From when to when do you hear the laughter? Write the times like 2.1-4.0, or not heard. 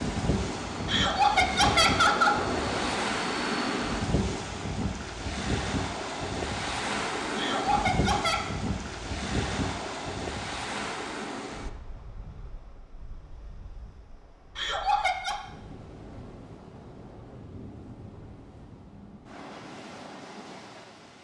0.8-2.4, 7.3-8.4, 14.6-15.4.